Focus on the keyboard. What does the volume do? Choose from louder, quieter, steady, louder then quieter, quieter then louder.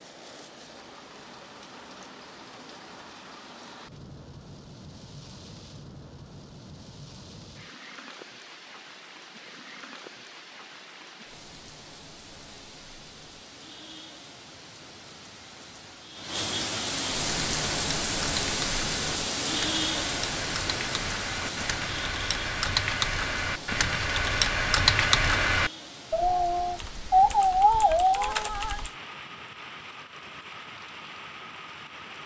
louder.